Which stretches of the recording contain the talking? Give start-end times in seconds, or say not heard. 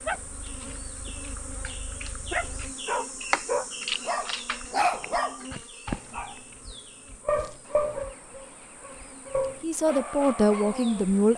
9.6-11.3.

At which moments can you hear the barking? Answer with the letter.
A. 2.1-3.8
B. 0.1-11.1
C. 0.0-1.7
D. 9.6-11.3
B.